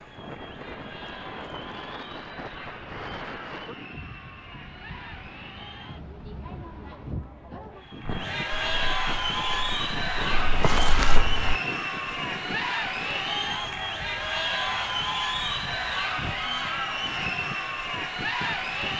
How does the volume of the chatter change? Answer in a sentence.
The loudness of the chatter goes up.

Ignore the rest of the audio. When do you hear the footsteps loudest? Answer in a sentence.
The volume of the footsteps peaks at 11 seconds.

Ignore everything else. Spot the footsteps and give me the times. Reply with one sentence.
The footsteps can be heard from 8.1 to 11.6 s.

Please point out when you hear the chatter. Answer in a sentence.
The chatter can be heard from 0.0 to 18.9 s.